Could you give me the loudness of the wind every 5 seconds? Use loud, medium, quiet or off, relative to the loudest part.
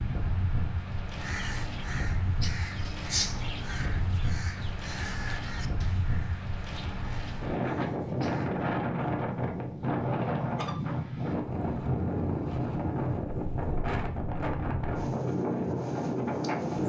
medium, loud, loud, loud.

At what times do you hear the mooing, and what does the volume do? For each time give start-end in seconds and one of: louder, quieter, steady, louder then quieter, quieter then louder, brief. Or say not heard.
not heard.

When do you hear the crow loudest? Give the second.
3 s.